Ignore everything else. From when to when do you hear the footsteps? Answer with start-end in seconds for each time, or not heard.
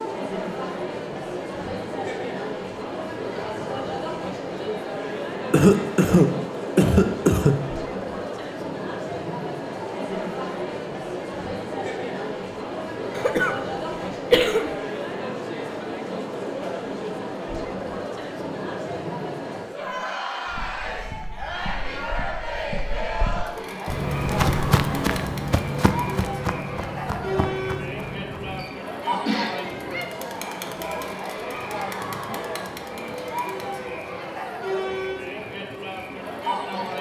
20.4-28.6.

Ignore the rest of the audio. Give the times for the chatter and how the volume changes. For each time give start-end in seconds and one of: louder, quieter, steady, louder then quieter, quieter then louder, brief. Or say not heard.
0.0-36.9 steady.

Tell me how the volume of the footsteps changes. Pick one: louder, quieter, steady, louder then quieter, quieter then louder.
louder then quieter.